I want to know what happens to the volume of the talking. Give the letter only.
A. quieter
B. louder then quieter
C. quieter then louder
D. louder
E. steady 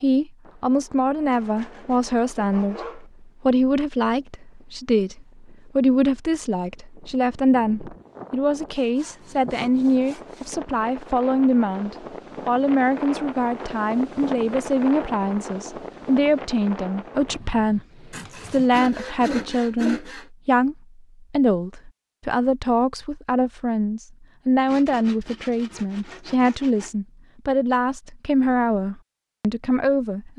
E.